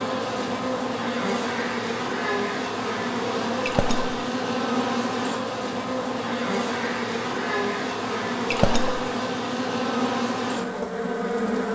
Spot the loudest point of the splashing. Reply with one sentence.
The volume of the splashing peaks at 9 seconds.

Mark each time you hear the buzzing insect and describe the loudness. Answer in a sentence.
The buzzing insect can be heard from 0.0 to 11.7 s, at a steady volume.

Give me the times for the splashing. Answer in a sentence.
You can hear the splashing from 3.6 to 4.1 s and from 8.5 to 9.0 s.